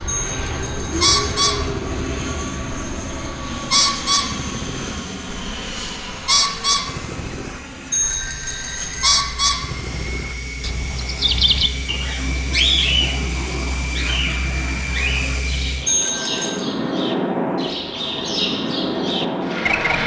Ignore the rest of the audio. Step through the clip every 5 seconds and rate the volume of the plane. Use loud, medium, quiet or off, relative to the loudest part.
loud, medium, medium, loud.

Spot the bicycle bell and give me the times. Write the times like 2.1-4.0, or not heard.
0.1-1.1, 7.9-9.2, 15.8-16.6.